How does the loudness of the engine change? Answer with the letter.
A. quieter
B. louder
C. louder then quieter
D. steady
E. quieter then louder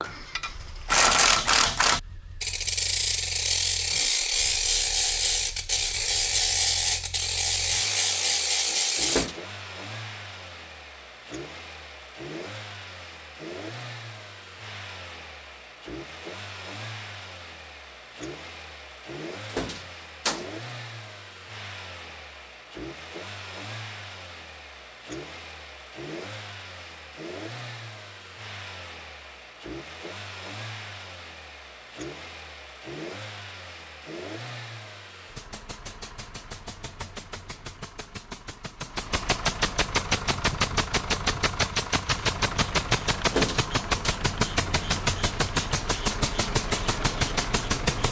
B.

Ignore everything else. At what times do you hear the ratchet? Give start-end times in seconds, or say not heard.
0.0-9.3, 42.0-47.9.